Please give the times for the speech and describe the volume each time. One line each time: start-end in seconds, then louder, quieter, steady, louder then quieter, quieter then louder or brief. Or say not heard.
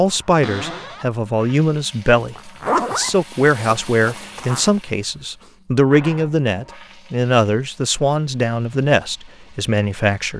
0.0-10.3 steady.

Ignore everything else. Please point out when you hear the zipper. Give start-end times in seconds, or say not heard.
2.4-4.7.